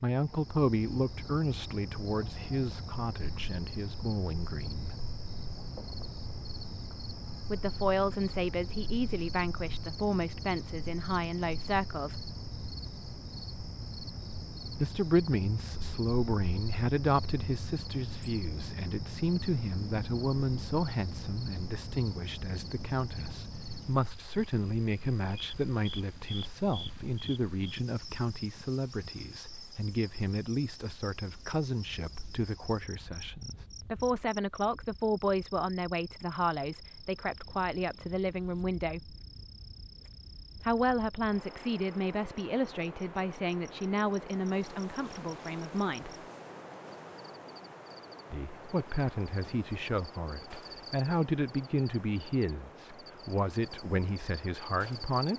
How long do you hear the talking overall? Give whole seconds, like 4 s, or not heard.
47 s.